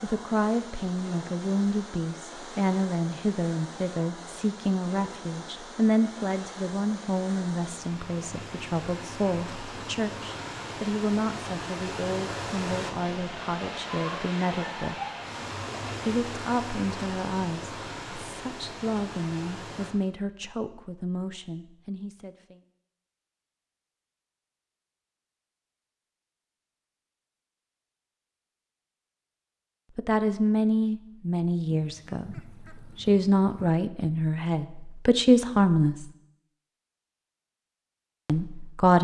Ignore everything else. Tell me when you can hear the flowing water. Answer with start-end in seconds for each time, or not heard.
0.0-19.9.